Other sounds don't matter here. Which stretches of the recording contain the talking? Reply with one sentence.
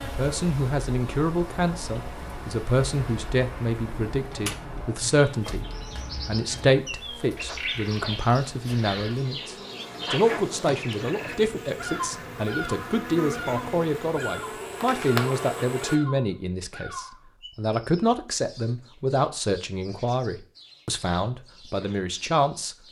You can hear the talking from 0.0 to 5.7 s and from 6.2 to 22.8 s.